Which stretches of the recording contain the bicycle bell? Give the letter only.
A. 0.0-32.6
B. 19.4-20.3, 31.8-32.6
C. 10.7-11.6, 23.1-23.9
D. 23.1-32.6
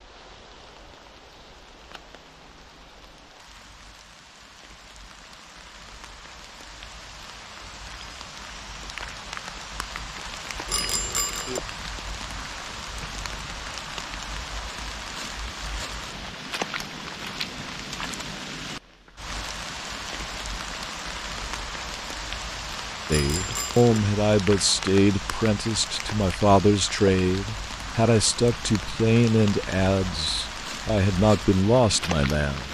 C.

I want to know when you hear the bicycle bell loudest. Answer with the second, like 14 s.
11 s.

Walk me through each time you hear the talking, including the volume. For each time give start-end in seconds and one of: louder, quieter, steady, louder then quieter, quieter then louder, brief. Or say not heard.
23.1-32.6 steady.